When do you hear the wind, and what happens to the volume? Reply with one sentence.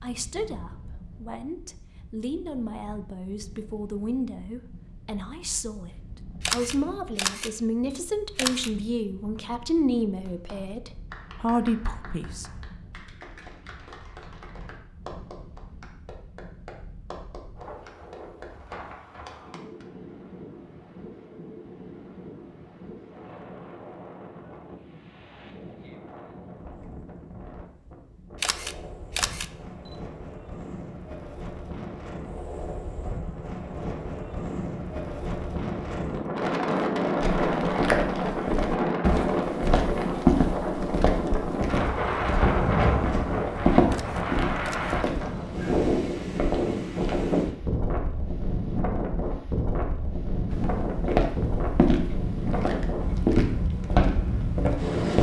You can hear the wind from 0.0 to 55.1 s, getting louder.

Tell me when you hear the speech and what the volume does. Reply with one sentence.
You can hear the speech from 0.0 to 12.5 s, getting louder.